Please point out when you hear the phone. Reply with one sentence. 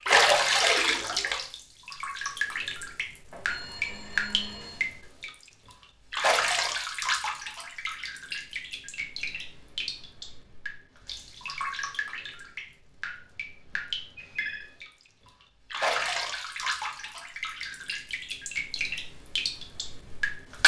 The phone can be heard from 3.3 to 4.9 s and from 13.7 to 14.7 s.